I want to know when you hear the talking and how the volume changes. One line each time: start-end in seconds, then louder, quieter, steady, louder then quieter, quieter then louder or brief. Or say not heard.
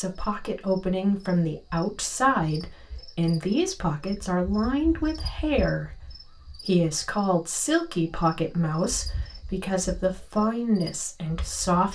0.0-11.9 steady.